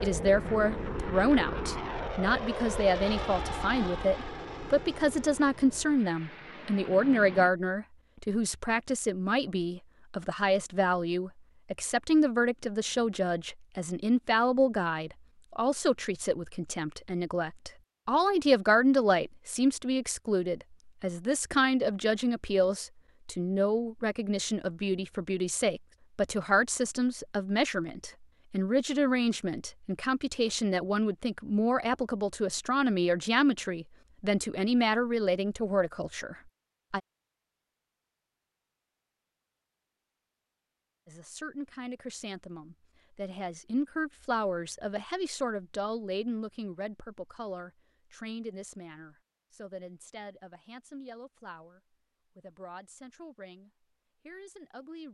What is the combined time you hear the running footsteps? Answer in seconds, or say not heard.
not heard.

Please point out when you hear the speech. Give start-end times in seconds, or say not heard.
0.0-37.0, 41.0-55.0.